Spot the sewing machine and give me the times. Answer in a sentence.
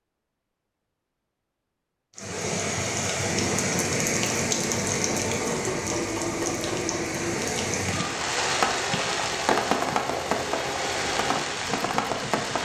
The sewing machine can be heard from 3.2 to 12.6 s.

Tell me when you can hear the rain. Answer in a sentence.
You can hear the rain from 2.1 to 12.6 s.